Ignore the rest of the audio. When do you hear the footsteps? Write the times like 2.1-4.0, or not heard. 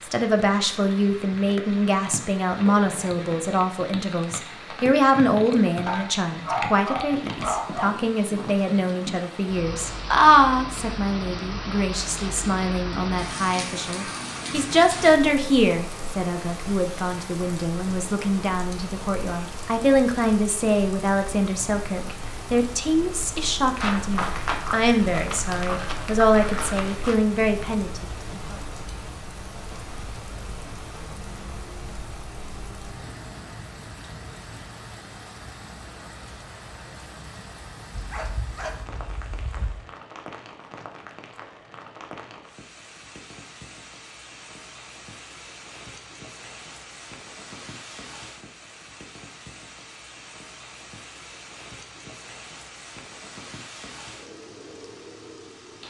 23.8-27.1.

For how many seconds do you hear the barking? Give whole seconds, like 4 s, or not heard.
4 s.